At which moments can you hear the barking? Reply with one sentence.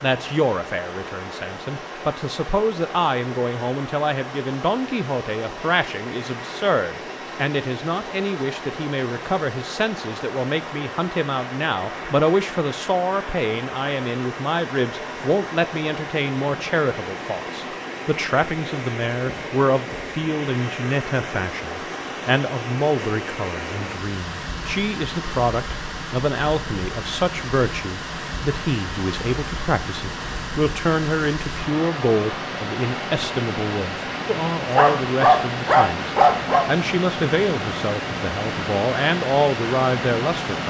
You can hear the barking from 34.8 to 36.6 s.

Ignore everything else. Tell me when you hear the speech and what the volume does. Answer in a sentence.
You can hear the speech from 0.0 to 40.6 s, at a steady volume.